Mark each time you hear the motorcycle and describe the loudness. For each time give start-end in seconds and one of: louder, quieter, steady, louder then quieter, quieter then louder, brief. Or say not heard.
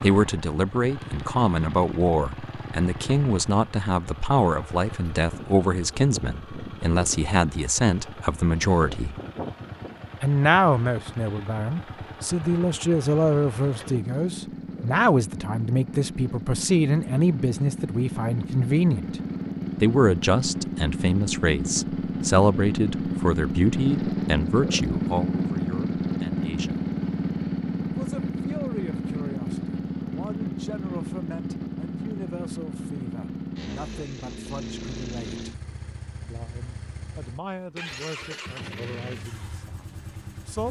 0.0-40.6 louder then quieter.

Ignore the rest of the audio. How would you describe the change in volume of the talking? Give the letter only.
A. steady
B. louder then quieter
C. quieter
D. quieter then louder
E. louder
C.